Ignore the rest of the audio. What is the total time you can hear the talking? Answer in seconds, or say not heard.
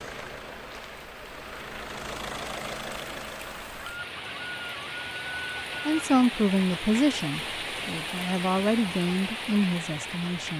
5 s.